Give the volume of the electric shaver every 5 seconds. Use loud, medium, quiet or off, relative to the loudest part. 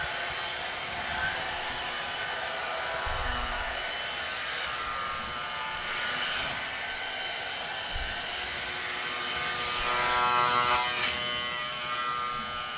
quiet, medium, loud.